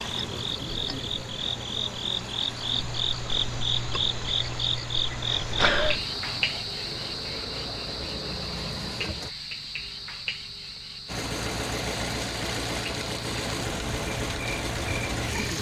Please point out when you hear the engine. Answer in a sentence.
You can hear the engine from 0.0 to 9.3 s and from 11.1 to 15.5 s.